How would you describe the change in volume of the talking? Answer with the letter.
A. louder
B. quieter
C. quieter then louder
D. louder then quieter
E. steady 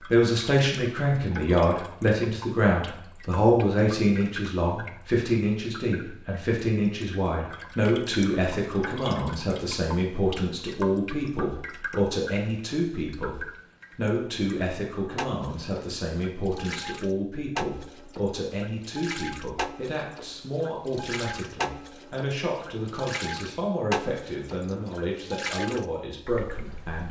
B.